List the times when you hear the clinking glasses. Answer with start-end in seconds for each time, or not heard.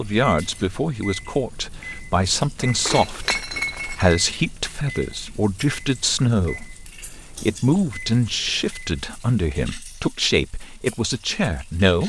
2.8-4.2.